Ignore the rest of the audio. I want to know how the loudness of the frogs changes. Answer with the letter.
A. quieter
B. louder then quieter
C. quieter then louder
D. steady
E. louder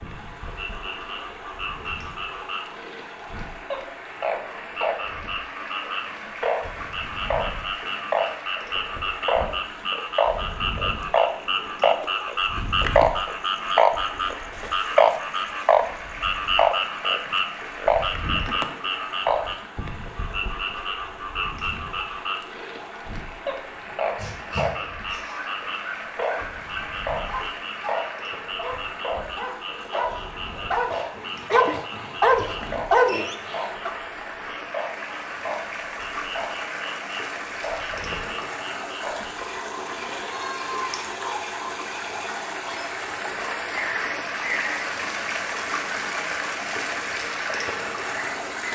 B.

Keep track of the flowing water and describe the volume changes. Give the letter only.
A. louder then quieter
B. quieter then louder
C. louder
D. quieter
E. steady
C.